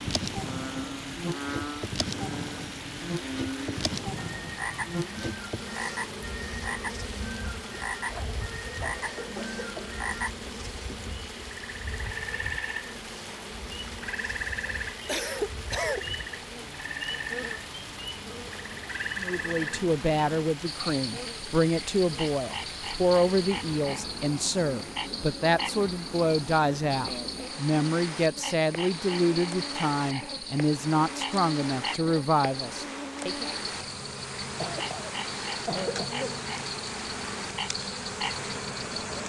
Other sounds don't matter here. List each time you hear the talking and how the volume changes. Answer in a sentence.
The talking can be heard from 19.1 to 33.5 s, at a steady volume.